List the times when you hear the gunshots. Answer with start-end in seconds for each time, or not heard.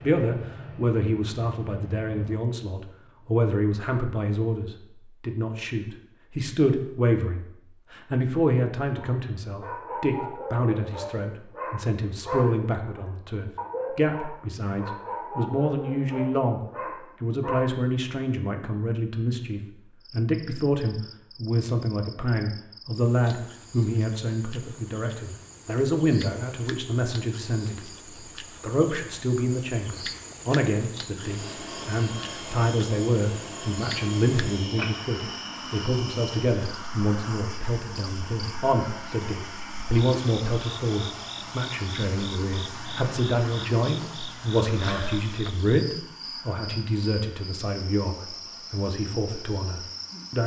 not heard.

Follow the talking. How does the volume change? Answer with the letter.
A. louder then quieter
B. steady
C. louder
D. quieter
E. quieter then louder
B.